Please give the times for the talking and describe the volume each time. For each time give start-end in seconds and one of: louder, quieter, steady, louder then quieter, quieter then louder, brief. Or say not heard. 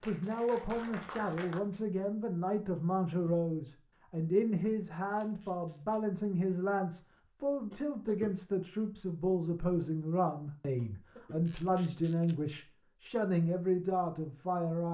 0.0-14.8 steady.